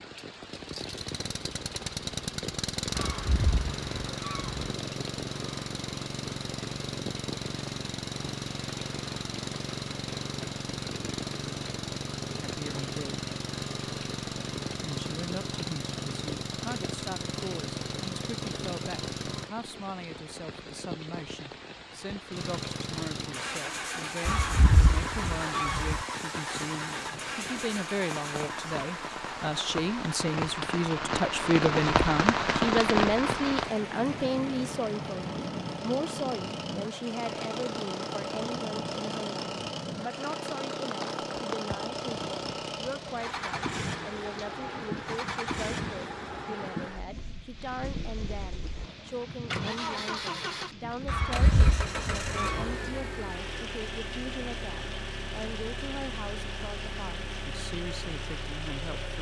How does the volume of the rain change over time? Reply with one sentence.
The volume of the rain goes up, then down.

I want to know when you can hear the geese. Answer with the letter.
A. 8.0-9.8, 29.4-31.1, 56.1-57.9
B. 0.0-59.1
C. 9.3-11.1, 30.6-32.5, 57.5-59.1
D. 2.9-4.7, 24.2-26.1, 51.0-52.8
D.